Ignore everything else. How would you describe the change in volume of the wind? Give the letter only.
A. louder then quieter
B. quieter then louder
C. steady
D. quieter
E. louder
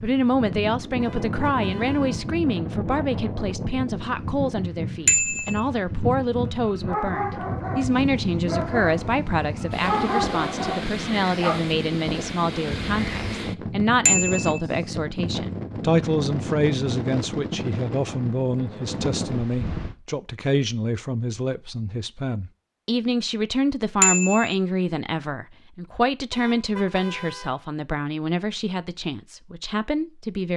C.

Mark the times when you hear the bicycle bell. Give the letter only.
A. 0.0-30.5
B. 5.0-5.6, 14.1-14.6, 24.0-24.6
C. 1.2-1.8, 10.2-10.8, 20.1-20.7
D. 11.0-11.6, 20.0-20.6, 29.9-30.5
B.